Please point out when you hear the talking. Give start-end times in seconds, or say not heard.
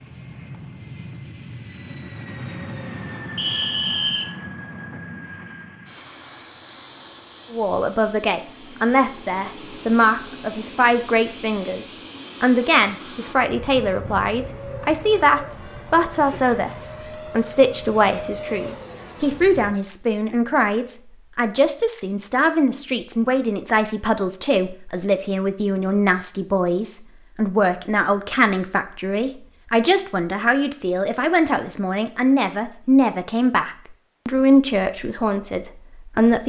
7.5-36.4.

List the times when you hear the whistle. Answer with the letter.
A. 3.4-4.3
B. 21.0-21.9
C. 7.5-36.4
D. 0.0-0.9
A.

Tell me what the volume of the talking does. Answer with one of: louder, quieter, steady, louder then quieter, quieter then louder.
steady.